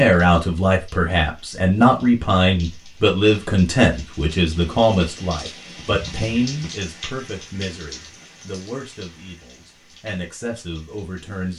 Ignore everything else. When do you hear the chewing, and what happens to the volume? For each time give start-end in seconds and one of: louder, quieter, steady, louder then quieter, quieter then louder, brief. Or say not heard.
not heard.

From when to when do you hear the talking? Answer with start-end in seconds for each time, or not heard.
0.0-11.5.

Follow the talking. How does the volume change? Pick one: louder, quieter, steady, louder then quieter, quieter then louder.
quieter.